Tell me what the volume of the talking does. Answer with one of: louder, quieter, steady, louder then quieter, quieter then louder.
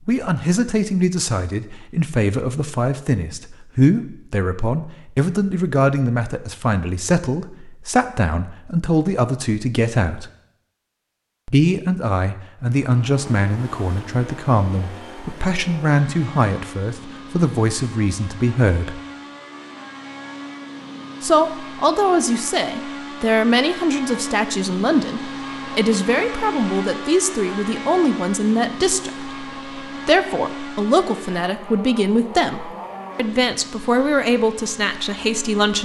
steady.